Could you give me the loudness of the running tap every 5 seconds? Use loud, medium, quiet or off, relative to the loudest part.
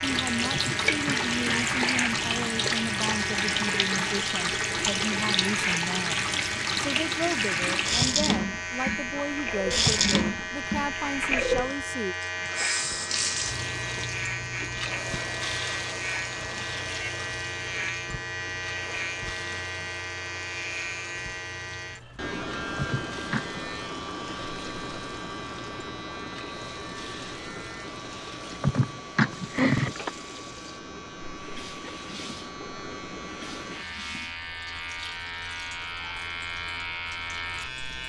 loud, loud, loud, medium, quiet, quiet, quiet, quiet.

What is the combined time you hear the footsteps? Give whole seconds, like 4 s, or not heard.
not heard.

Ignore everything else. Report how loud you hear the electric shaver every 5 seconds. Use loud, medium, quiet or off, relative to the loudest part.
loud, loud, loud, loud, loud, medium, medium, loud.